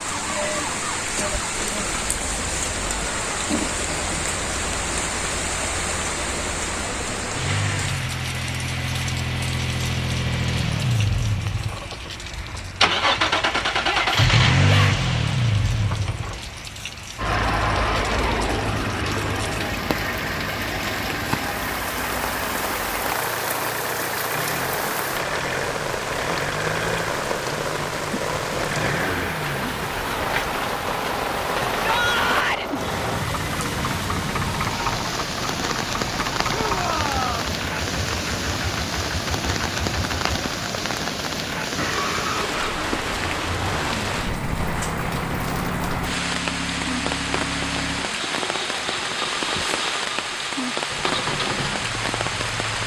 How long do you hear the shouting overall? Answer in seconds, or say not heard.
3 s.